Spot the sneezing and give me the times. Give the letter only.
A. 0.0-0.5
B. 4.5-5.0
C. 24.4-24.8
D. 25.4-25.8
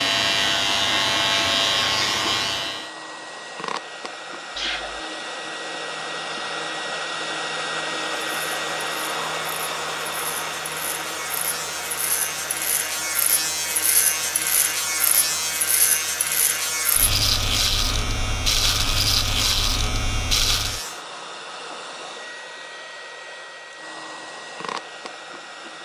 B.